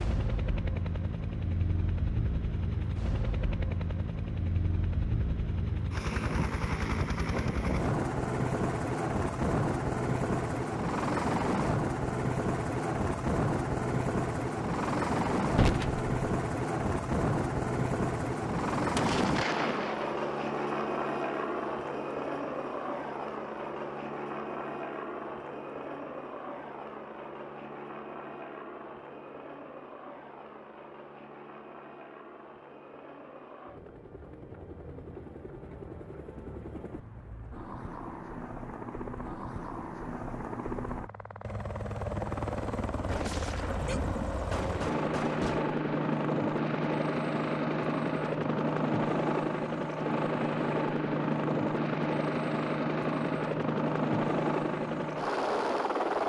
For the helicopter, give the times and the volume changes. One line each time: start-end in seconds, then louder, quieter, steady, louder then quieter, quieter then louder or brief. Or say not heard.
0.0-56.2 quieter then louder.